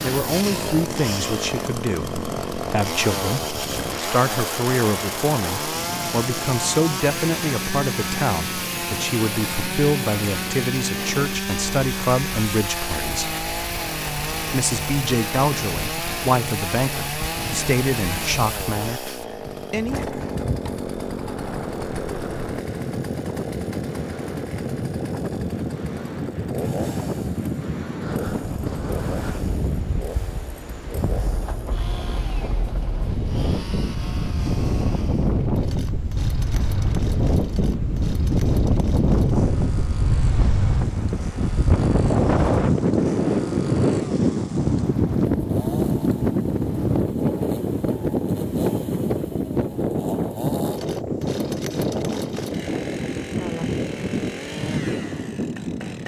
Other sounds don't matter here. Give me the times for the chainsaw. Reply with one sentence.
The chainsaw can be heard from 0.0 to 56.0 s.